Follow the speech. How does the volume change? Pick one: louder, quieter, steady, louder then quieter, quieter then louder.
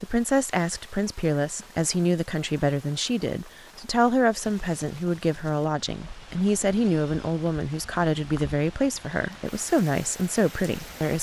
steady.